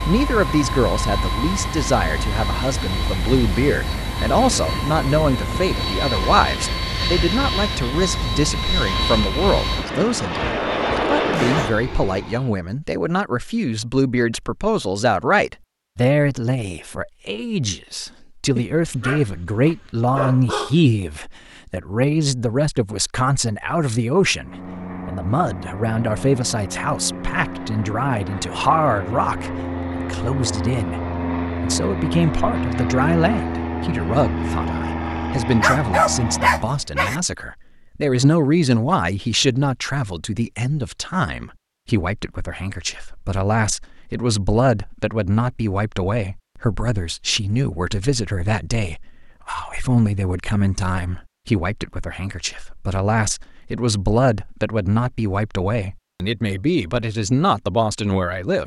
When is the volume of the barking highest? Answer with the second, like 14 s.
36 s.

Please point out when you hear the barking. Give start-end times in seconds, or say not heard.
18.6-20.8, 35.6-37.2.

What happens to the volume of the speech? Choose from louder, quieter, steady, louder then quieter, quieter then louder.
steady.